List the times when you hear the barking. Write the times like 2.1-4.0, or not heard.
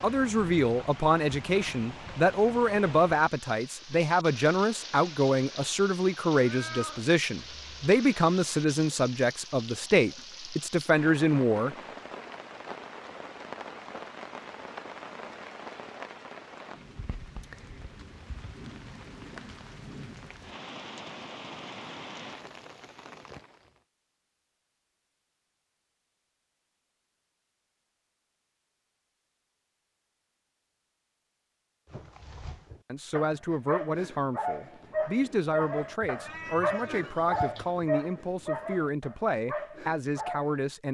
31.9-40.7.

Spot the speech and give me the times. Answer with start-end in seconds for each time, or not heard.
0.0-11.8, 32.9-40.8.